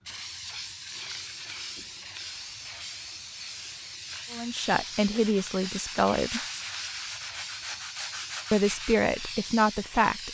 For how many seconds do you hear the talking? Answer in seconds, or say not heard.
4 s.